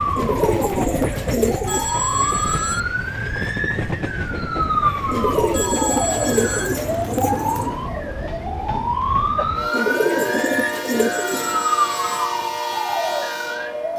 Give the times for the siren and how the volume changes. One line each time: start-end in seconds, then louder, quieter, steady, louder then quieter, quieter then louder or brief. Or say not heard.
0.0-13.9 steady.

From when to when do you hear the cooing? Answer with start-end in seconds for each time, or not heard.
0.1-1.9, 5.1-7.8, 9.7-11.7.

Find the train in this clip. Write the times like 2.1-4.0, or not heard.
0.0-13.9.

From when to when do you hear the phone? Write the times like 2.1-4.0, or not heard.
1.6-2.8, 5.5-6.7, 11.1-12.2.